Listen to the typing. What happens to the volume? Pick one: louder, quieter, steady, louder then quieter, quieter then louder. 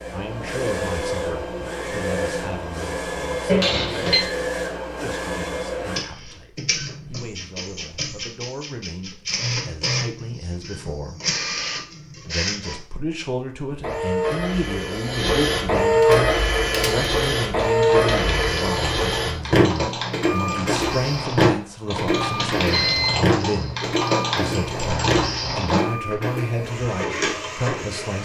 louder.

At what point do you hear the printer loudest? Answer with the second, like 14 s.
16 s.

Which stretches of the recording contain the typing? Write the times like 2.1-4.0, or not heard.
16.0-25.8.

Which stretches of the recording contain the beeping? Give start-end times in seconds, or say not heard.
3.5-4.2, 22.1-23.2.